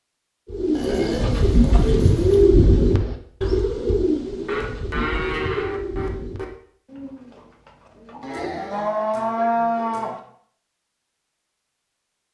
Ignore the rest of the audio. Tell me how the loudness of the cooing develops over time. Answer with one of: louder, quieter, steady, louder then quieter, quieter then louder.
quieter.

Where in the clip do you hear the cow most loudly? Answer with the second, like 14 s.
10 s.